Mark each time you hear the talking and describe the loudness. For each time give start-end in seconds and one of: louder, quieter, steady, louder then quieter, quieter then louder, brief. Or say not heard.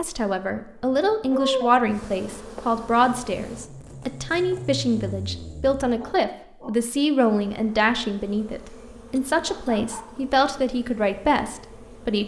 0.0-12.2 steady.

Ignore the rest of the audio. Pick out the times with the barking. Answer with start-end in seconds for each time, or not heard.
0.8-1.8, 6.0-6.7, 8.6-10.1.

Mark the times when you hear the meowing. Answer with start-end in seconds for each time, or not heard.
not heard.